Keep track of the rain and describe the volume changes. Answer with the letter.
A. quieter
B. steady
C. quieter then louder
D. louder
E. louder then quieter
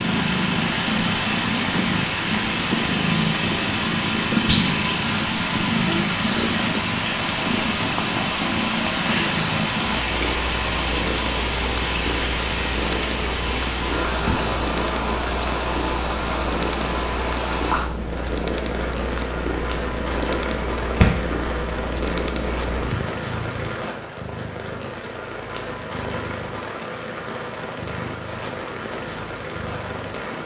A.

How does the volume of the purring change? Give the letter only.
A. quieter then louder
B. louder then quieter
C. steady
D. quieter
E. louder
D.